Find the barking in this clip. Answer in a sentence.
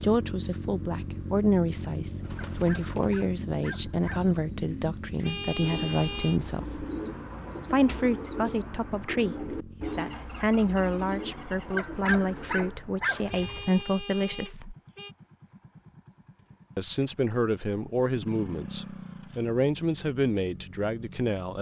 You can hear the barking from 2.5 to 4.3 s and from 11.8 to 13.2 s.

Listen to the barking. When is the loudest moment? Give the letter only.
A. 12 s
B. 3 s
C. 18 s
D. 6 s
A.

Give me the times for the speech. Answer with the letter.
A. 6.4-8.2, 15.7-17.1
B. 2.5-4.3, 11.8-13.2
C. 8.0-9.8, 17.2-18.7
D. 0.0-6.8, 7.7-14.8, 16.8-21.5
D.